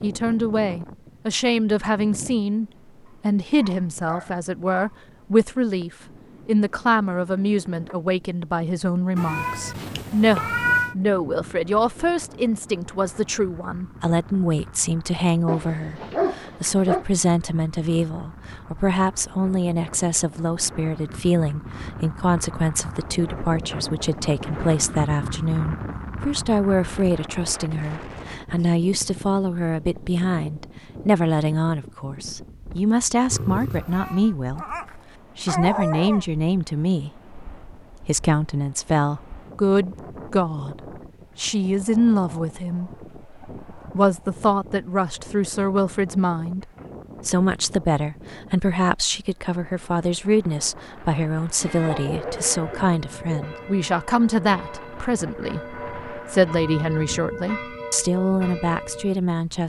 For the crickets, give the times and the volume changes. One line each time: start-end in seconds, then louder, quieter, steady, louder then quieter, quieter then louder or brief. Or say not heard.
not heard.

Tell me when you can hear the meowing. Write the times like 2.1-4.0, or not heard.
9.2-10.9, 33.3-34.4.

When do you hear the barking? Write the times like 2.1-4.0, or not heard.
3.0-5.0, 15.4-17.1, 34.5-36.2, 51.8-53.5.